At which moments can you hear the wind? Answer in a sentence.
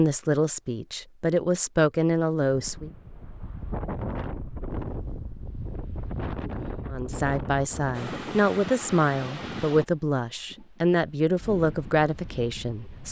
The wind can be heard from 2.5 to 13.0 s.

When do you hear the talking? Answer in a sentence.
You can hear the talking from 0.0 to 2.9 s and from 6.9 to 13.0 s.